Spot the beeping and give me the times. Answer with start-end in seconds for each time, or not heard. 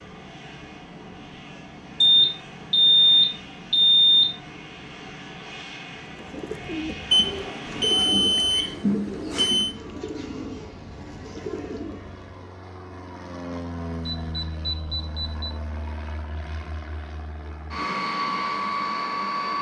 2.0-4.3, 7.1-9.7, 14.0-15.6.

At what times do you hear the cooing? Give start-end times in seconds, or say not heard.
6.0-12.6.